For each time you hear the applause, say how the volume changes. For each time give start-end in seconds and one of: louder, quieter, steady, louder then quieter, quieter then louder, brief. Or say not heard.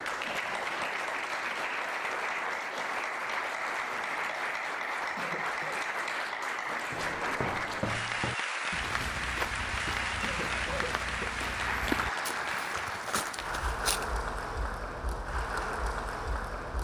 0.0-16.8 steady.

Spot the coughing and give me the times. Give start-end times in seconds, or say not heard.
5.2-5.8, 10.2-11.3.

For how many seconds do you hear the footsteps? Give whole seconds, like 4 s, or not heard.
7 s.